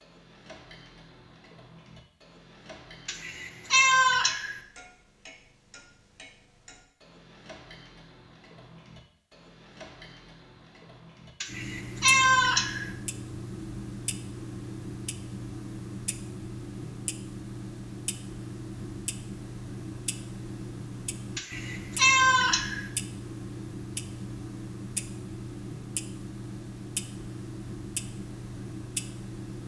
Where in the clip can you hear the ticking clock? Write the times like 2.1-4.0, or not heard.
0.0-29.6.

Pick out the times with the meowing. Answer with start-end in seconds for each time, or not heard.
3.0-4.6, 11.4-12.9, 21.4-22.9.